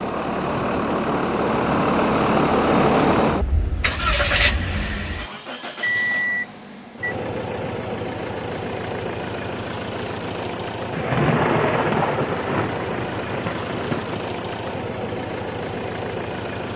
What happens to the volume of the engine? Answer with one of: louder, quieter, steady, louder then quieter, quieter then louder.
quieter.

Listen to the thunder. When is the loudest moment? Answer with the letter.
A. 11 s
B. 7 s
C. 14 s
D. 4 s
A.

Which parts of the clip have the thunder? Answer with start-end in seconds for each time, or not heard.
10.9-14.2.